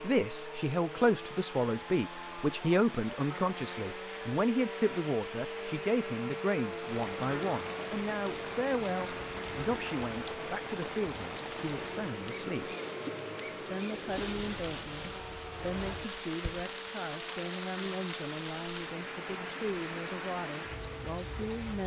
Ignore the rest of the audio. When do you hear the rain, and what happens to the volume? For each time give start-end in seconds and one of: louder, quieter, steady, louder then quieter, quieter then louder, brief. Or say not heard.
6.7-21.8 steady.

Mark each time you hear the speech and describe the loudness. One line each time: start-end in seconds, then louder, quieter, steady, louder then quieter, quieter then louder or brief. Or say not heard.
0.0-12.8 quieter
13.7-21.8 steady.